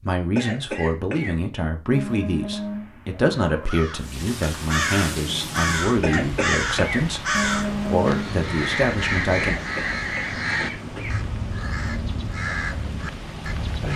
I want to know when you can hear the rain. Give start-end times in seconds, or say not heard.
4.0-13.9.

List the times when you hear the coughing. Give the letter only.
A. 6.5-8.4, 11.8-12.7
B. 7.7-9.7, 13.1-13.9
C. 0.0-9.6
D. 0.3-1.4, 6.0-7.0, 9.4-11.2
D.